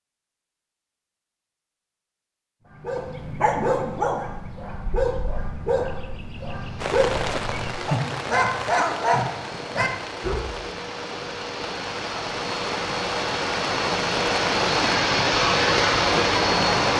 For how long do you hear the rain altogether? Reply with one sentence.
The rain can be heard for 10 seconds in total.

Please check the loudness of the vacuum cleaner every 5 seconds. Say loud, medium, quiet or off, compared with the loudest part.
off, quiet, medium, loud.